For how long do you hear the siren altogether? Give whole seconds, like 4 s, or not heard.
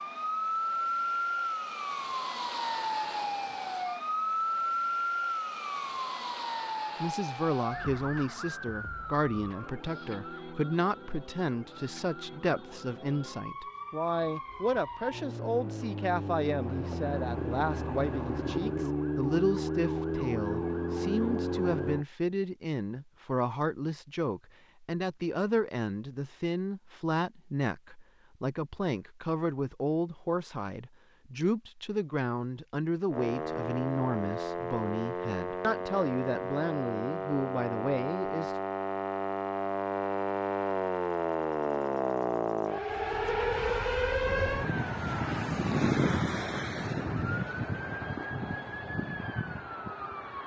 39 s.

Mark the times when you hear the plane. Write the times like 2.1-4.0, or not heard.
not heard.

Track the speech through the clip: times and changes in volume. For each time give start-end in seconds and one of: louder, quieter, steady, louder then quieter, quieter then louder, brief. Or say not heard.
7.0-38.5 steady.